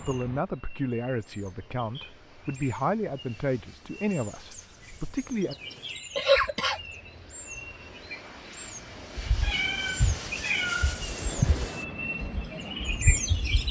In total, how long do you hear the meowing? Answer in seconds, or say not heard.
2 s.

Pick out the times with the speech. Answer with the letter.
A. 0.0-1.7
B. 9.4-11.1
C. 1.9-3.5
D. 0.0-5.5
D.